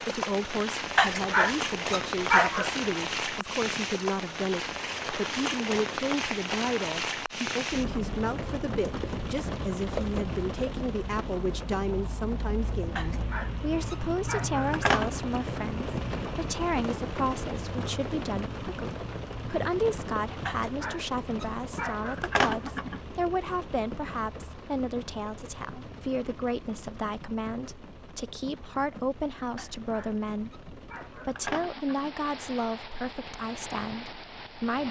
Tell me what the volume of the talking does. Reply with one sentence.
The loudness of the talking stays about the same.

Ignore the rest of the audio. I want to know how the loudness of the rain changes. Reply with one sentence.
The volume of the rain goes down.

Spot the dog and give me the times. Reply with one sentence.
You can hear the dog from 0.9 to 2.7 s, from 12.9 to 15.2 s, from 20.4 to 23.0 s and from 29.6 to 32.1 s.